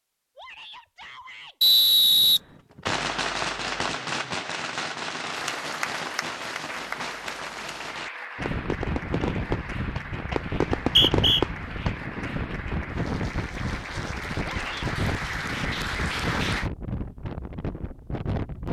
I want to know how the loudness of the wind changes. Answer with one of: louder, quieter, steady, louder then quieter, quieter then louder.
steady.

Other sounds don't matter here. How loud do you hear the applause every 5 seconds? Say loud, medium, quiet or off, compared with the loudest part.
off, medium, medium, loud.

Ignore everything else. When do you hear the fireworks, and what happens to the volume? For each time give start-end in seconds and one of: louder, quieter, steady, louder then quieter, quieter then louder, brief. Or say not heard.
2.2-12.0 quieter then louder.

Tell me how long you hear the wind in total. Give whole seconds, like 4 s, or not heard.
10 s.